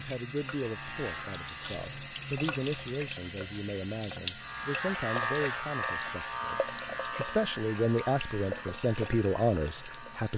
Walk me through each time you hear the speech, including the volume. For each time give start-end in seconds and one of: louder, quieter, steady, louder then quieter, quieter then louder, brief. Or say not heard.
0.0-10.3 louder.